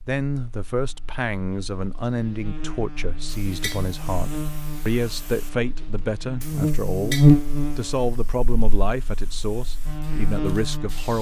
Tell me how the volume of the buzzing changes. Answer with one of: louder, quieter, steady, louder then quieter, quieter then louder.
louder then quieter.